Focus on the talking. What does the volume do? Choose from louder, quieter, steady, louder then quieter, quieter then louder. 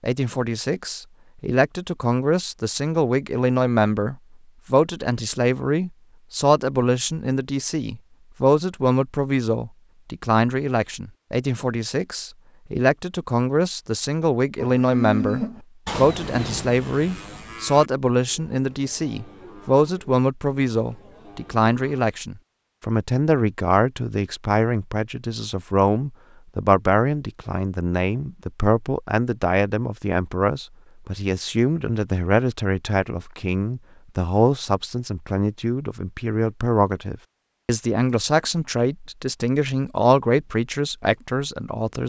steady.